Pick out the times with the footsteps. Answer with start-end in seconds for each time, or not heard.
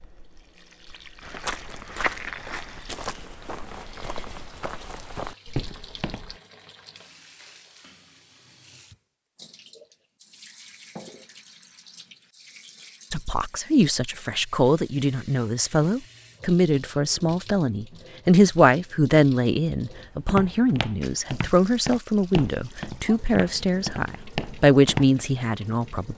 1.2-6.3, 19.9-25.1.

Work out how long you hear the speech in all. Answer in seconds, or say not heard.
13 s.